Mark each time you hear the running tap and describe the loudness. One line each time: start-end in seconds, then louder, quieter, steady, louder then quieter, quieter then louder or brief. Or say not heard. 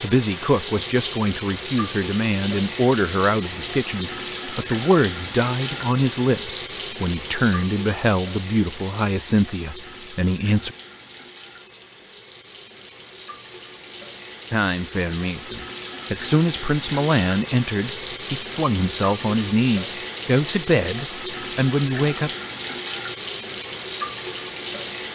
0.0-25.1 quieter then louder.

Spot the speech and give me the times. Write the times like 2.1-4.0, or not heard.
0.0-10.8, 14.5-22.3.